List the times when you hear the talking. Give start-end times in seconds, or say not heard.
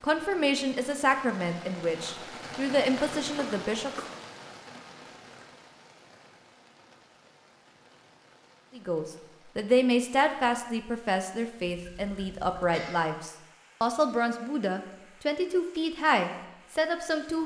0.0-3.9, 8.8-17.4.